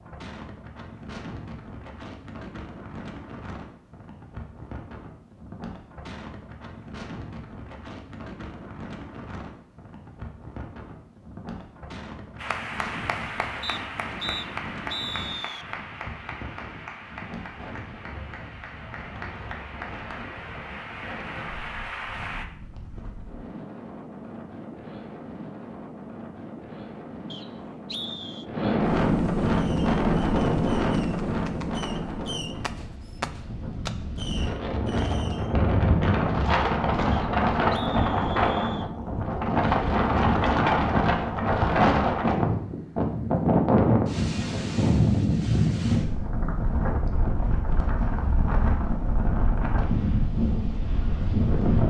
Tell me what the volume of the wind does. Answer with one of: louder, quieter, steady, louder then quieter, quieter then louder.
louder.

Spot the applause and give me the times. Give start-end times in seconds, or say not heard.
12.3-22.4.